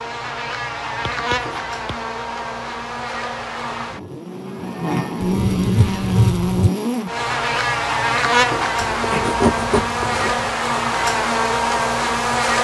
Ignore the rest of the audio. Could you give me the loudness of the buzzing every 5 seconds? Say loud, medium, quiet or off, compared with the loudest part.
medium, loud, loud.